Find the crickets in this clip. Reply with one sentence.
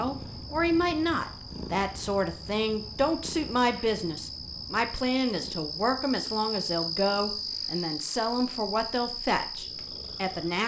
The crickets can be heard from 0.0 to 10.6 s.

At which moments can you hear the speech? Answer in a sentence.
The speech can be heard from 0.0 to 10.6 s.